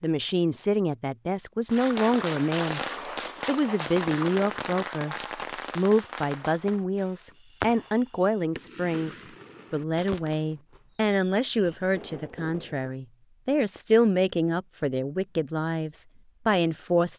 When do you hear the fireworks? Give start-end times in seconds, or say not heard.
1.6-12.9.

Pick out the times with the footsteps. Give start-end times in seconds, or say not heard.
not heard.